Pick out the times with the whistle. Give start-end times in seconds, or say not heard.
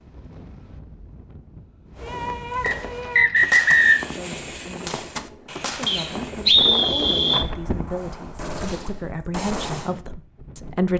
2.6-4.0, 5.8-7.5.